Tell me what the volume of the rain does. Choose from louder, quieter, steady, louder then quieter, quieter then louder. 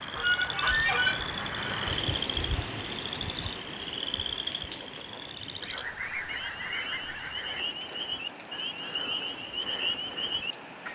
quieter.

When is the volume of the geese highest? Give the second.
1 s.